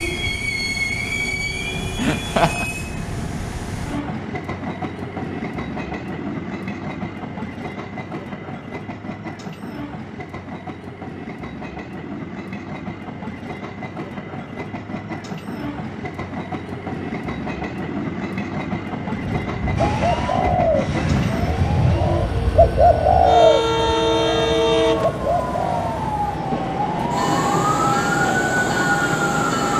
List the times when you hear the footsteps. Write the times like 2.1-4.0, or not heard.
not heard.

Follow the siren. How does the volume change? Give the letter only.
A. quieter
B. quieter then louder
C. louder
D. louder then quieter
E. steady
C.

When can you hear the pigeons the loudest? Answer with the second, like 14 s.
23 s.